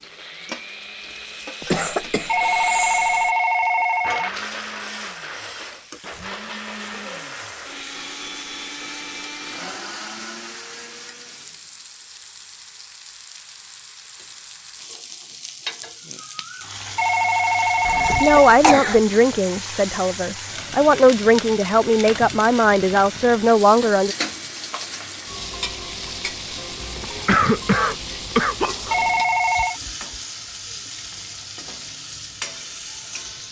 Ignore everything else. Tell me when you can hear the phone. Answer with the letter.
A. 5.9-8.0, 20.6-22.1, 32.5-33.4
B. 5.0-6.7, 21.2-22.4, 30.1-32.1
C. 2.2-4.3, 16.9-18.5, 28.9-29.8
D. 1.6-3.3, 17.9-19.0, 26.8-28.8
C.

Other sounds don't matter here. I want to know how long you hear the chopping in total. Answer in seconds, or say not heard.
not heard.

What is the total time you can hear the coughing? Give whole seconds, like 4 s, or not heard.
5 s.